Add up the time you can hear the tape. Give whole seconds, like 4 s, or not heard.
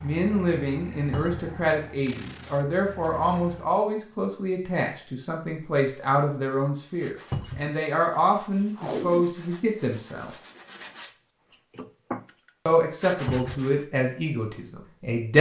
2 s.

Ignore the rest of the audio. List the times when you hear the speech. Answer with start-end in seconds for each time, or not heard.
0.0-10.3, 12.7-15.3.